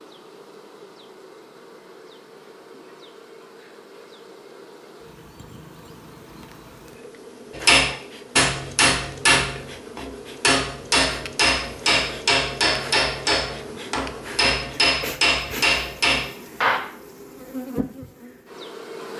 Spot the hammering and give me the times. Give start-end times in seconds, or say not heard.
7.5-16.8.